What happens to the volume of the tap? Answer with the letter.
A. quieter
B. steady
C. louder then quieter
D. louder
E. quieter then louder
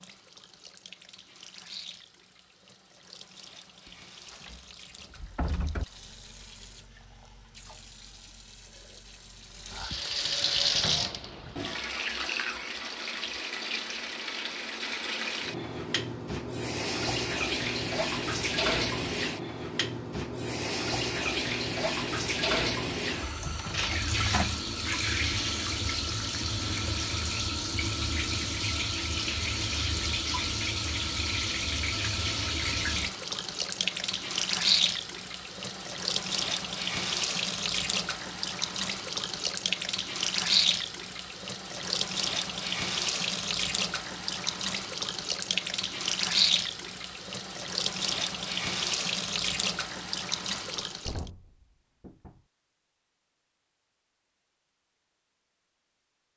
D.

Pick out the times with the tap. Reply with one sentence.
You can hear the tap from 0.0 to 51.3 s.